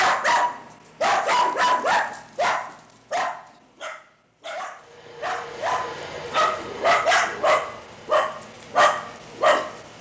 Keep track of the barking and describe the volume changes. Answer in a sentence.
The loudness of the barking goes down, then up.